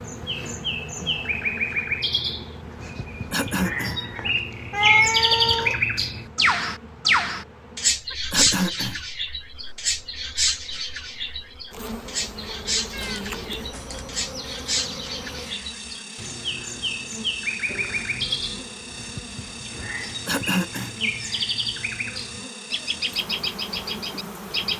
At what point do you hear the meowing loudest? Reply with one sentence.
The loudest moment of the meowing is at 5 seconds.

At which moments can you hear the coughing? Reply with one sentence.
The coughing can be heard from 3.3 to 4.0 s, from 8.3 to 9.0 s and from 20.2 to 20.9 s.